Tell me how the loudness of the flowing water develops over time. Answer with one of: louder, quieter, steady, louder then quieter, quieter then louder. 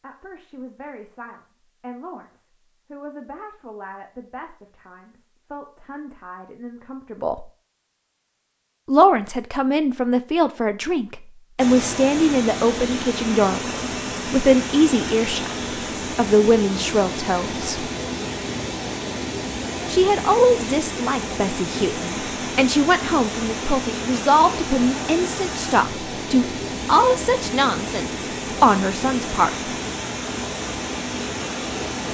steady.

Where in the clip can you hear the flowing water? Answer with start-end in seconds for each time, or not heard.
11.6-32.0.